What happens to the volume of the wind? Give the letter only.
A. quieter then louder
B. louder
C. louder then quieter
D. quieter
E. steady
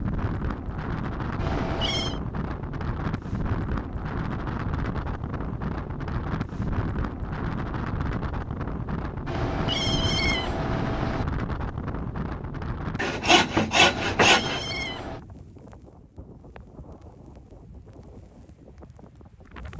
D.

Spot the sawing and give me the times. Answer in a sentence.
The sawing can be heard from 12.9 to 14.7 s.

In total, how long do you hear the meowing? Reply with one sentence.
You can hear the meowing for 4 seconds altogether.